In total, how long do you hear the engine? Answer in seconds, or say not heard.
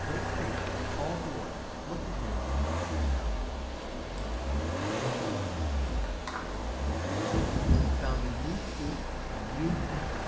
10 s.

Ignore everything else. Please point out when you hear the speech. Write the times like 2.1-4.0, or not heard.
0.0-2.5, 7.8-10.1.